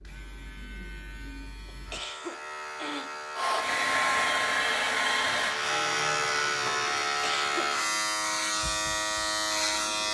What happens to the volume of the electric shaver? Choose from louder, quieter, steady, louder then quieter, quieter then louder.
louder.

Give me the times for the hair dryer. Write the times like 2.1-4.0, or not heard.
3.4-6.5.